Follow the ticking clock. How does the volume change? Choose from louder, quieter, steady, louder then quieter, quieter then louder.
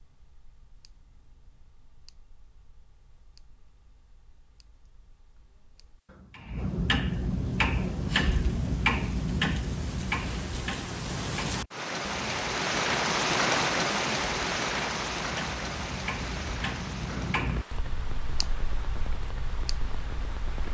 louder then quieter.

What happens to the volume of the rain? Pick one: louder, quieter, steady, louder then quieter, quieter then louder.
louder then quieter.